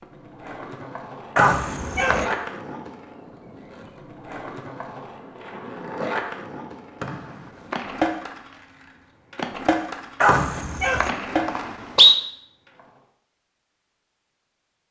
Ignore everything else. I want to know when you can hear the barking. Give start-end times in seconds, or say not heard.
1.4-2.2, 10.2-11.1.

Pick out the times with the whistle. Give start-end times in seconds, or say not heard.
1.4-2.4, 7.0-8.1, 10.2-12.2.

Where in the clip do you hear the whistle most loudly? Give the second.
12 s.